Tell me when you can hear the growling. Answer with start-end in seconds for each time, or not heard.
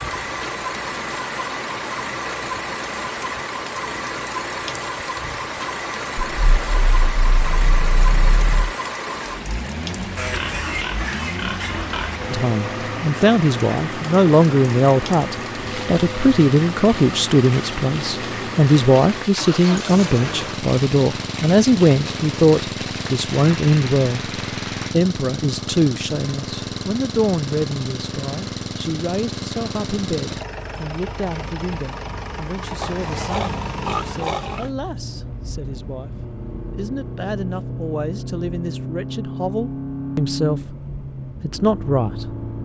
6.3-8.8.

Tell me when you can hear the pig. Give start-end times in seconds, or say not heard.
10.2-12.2, 32.8-34.7.